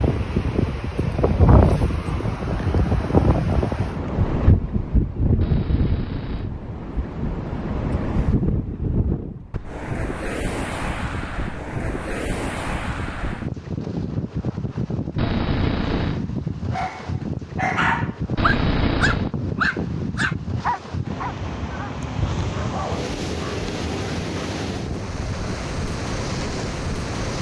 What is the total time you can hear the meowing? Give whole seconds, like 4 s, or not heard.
3 s.